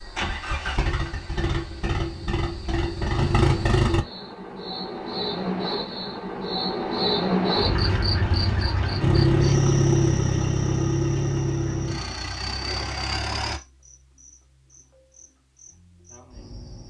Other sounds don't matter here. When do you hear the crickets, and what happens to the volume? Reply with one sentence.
The crickets can be heard from 0.0 to 16.8 s, getting louder then quieter.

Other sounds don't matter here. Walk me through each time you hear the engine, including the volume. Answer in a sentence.
The engine can be heard from 0.0 to 4.0 s, getting louder; and from 9.0 to 13.6 s, getting quieter.